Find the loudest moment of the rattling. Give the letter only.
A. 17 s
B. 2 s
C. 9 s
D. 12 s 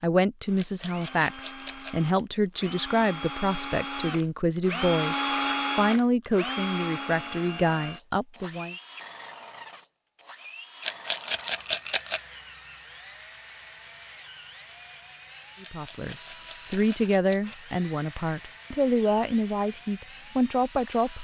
D.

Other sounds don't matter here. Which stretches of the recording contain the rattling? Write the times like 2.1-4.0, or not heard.
0.6-2.1, 10.8-12.2, 15.6-17.6.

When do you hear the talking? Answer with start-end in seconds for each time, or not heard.
0.0-8.8, 15.6-21.1.